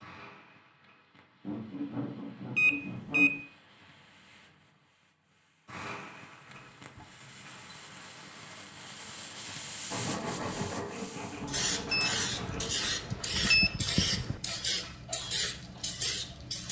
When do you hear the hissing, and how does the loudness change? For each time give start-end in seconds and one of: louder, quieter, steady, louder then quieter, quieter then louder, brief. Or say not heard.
0.0-16.6 louder.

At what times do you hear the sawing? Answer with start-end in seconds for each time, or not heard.
1.4-3.3, 9.9-12.8.